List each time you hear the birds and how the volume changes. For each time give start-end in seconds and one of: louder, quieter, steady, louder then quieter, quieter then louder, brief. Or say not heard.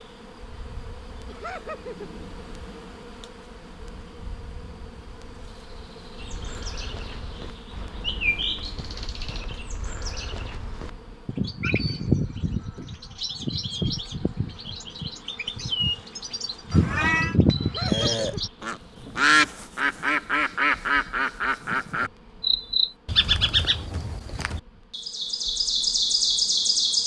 6.2-27.0 louder.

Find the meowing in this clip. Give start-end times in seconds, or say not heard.
16.7-17.4.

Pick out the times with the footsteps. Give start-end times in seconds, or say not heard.
not heard.